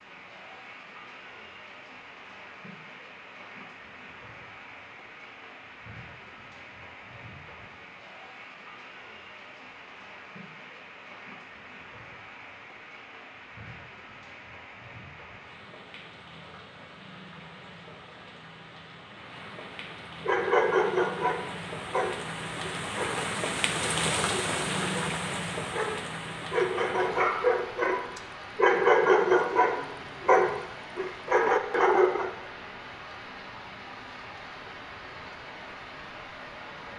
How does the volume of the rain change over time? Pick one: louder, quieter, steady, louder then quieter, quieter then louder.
louder then quieter.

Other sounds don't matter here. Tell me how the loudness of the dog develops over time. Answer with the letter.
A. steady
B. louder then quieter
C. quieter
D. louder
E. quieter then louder
E.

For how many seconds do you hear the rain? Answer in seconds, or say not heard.
37 s.